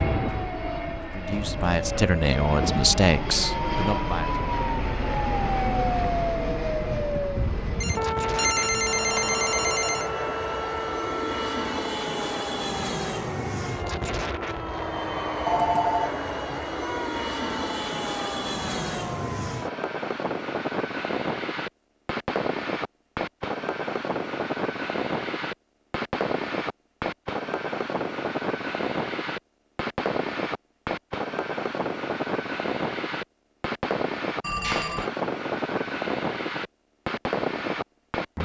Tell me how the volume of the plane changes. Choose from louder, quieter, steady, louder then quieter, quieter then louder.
steady.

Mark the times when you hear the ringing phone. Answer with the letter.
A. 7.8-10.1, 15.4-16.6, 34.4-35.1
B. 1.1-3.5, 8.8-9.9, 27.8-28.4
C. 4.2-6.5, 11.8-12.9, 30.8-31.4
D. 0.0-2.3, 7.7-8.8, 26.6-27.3
A.